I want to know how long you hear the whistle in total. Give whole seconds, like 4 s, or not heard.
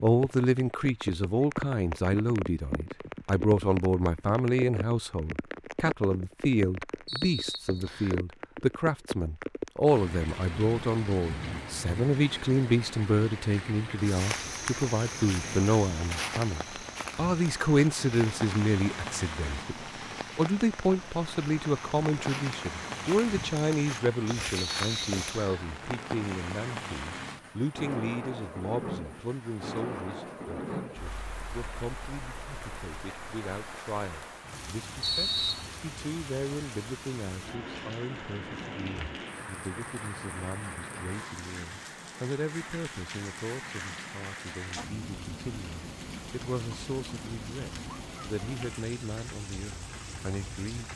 3 s.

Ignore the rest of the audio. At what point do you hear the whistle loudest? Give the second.
35 s.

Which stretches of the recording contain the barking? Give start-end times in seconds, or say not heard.
not heard.